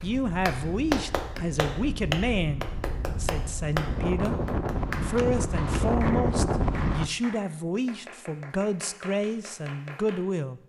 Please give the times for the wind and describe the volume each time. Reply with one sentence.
You can hear the wind from 0.0 to 7.1 s, getting louder.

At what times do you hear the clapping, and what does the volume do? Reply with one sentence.
The clapping can be heard from 0.0 to 10.2 s, getting quieter.